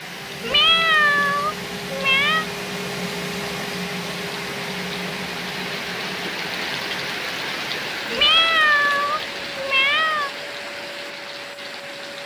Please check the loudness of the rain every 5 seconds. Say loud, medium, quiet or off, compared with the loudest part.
medium, loud, medium.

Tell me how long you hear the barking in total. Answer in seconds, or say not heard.
not heard.